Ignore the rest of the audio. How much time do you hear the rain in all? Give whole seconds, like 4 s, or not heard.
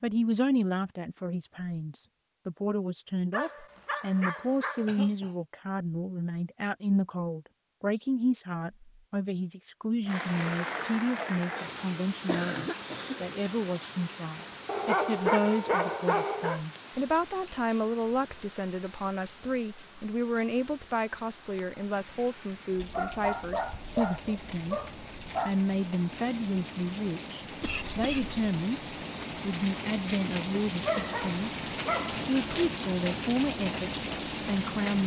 25 s.